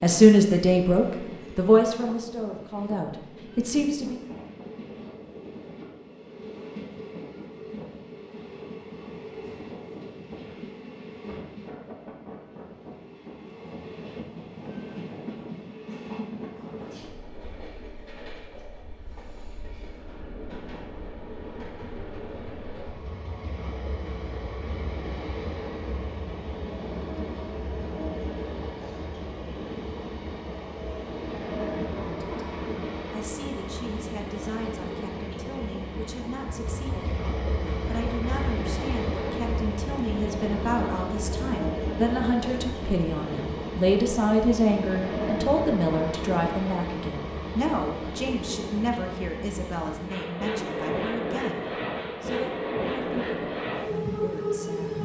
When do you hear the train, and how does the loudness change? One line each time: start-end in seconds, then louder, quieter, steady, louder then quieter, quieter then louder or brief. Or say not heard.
0.0-55.0 louder.